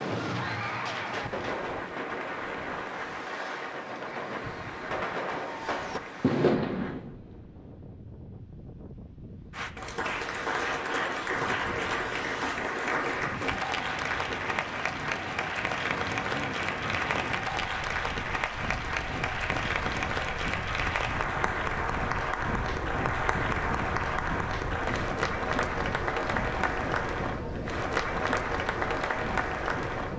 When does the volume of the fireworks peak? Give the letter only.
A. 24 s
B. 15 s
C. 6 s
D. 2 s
C.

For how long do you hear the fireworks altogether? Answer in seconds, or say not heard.
7 s.